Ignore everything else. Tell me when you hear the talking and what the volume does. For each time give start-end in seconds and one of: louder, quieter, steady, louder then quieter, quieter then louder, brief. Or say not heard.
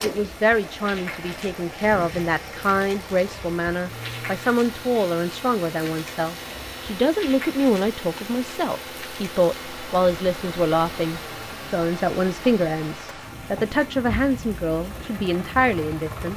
0.0-16.3 steady.